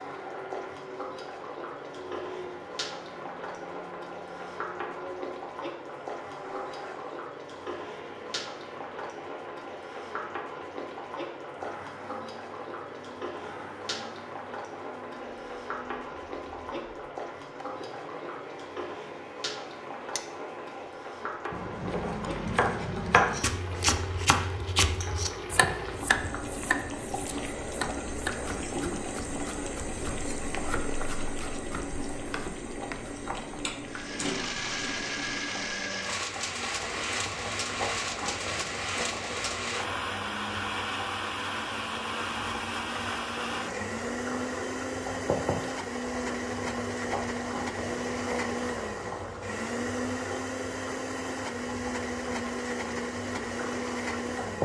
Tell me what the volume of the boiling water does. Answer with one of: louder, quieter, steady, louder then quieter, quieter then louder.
steady.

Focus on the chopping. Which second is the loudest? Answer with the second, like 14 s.
23 s.